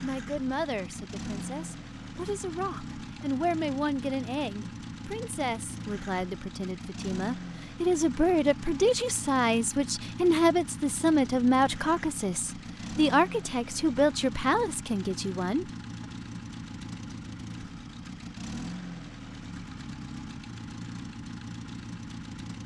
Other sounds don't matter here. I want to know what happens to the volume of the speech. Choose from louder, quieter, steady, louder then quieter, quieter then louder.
louder.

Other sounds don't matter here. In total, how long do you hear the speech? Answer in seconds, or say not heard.
16 s.